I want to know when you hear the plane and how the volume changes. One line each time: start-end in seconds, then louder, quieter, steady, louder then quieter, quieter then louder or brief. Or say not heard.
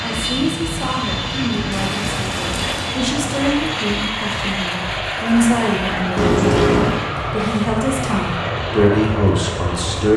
0.0-10.1 steady.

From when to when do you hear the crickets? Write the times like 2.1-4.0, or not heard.
not heard.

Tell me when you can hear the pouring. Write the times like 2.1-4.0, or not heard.
1.7-3.0, 6.2-7.0.